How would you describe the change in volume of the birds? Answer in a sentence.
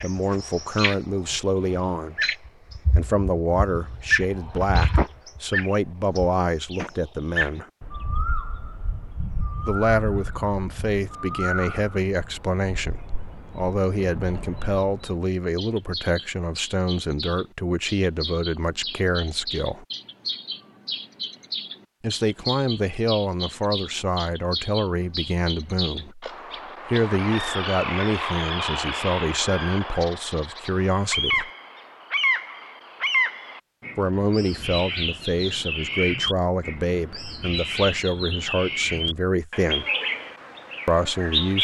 The volume of the birds goes down, then up.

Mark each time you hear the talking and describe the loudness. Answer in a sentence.
The talking can be heard from 0.0 to 7.7 s, at a steady volume; from 9.6 to 19.9 s, at a steady volume; from 22.0 to 31.5 s, at a steady volume; from 34.0 to 40.0 s, at a steady volume; and briefly from 40.9 to 41.6 s.